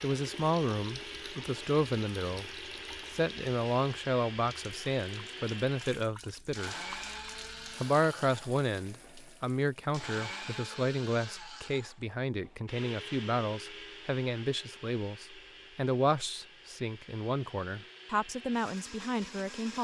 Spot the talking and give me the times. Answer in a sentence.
You can hear the talking from 0.0 to 2.5 s, from 3.1 to 6.8 s and from 7.8 to 19.7 s.